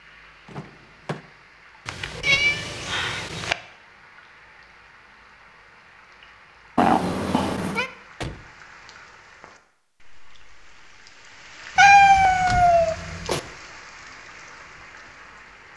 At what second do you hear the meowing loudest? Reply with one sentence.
The loudest moment of the meowing is at 12 seconds.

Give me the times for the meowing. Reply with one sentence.
You can hear the meowing from 1.9 to 3.5 s, from 6.8 to 7.8 s and from 11.8 to 13.4 s.